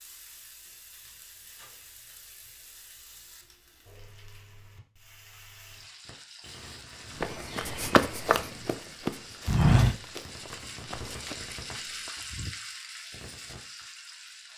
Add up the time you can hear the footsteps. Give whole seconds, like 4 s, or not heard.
5 s.